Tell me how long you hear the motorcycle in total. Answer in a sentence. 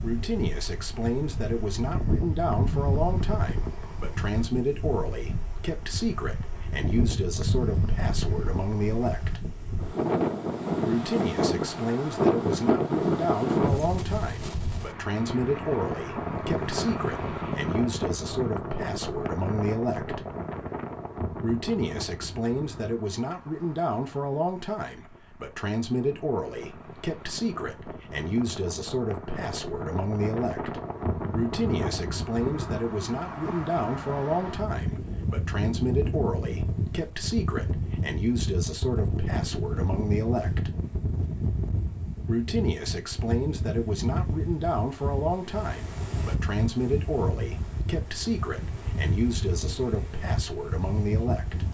You can't hear the motorcycle here.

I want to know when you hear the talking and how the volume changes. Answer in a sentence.
The talking can be heard from 0.0 to 9.4 s, at a steady volume; from 10.8 to 20.2 s, at a steady volume; from 21.4 to 40.7 s, at a steady volume; and from 42.2 to 51.6 s, at a steady volume.